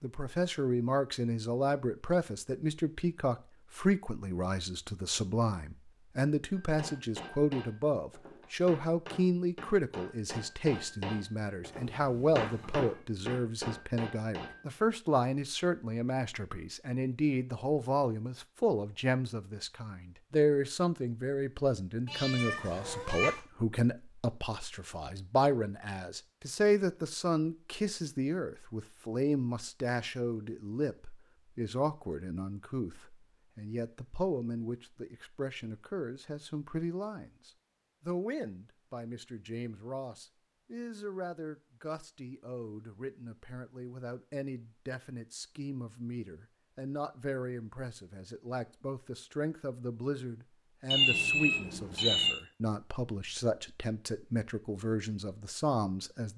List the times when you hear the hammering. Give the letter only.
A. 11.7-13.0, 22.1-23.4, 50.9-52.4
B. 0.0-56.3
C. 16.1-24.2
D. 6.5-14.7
D.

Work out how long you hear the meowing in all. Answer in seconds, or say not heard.
4 s.